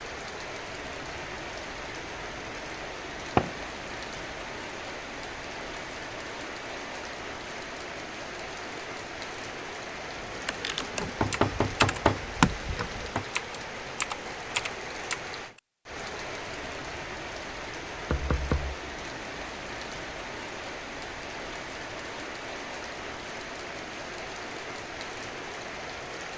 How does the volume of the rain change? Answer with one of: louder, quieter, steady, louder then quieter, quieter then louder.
steady.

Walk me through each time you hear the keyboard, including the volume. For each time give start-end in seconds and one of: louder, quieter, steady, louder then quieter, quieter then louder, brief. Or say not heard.
10.2-15.6 louder then quieter.